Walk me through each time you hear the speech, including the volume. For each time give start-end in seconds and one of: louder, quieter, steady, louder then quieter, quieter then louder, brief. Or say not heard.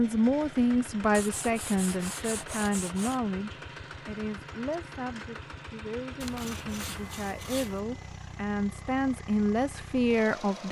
0.0-10.6 quieter then louder.